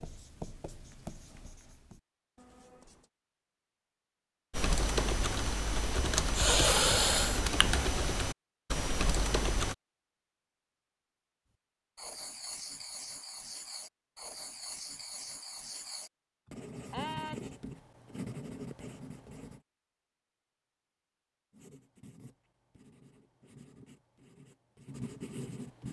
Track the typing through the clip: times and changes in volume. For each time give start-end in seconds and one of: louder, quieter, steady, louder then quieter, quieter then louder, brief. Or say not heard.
4.5-9.8 steady.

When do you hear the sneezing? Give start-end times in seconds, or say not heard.
16.4-17.5.